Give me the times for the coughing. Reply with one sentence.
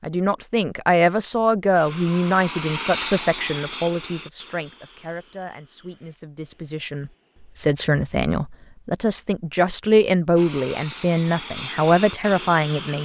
The coughing can't be heard in this clip.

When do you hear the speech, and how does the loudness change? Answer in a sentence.
The speech can be heard from 0.0 to 13.0 s, getting quieter then louder.